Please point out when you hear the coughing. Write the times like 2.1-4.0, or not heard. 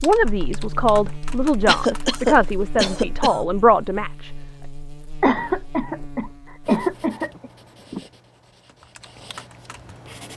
1.6-3.5, 5.2-7.5.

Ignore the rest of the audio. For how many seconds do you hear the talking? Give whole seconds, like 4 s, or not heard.
4 s.